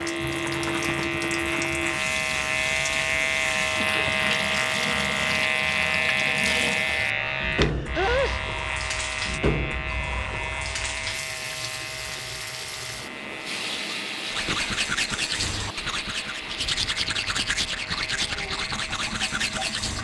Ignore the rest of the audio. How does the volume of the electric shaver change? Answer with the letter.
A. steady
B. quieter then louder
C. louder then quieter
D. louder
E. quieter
E.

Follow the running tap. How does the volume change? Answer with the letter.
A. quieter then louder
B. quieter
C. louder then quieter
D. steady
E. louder
B.